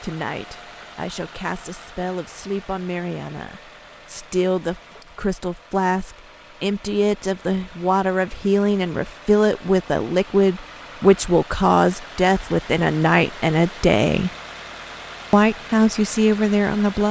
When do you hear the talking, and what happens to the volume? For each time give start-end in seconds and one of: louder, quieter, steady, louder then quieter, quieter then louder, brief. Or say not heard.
0.0-14.3 louder
15.3-17.0 brief.